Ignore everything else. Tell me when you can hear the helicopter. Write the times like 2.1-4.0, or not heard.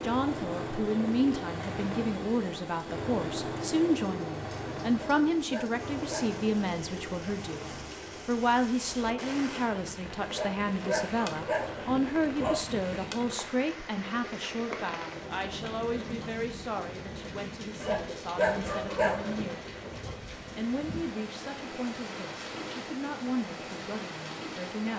0.0-24.9.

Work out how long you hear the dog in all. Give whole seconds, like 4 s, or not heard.
6 s.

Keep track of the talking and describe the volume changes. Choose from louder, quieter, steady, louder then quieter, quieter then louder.
quieter.